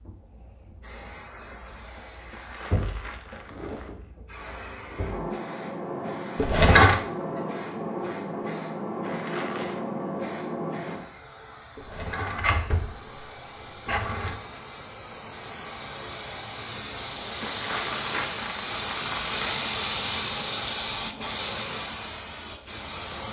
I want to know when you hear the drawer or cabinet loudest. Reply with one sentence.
The loudest moment of the drawer or cabinet is at 7 seconds.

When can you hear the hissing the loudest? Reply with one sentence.
The loudest moment of the hissing is at 20 seconds.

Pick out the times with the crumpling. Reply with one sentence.
The crumpling can be heard from 2.3 to 4.0 s, from 9.0 to 9.8 s and from 17.4 to 19.6 s.